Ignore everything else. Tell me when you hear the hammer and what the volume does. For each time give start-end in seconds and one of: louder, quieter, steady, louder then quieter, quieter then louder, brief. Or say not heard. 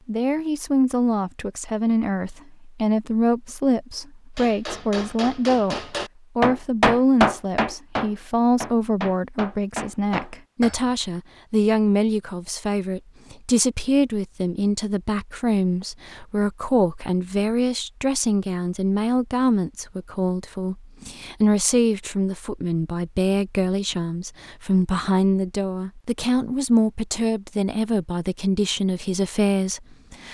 4.3-10.9 louder then quieter.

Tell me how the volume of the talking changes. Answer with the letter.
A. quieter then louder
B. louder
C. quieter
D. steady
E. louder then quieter
D.